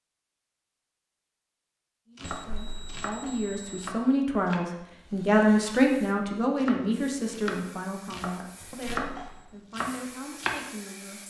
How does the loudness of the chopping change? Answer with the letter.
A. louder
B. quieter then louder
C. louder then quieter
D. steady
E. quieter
A.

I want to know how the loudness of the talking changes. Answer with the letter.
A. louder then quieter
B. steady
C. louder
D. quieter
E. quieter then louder
A.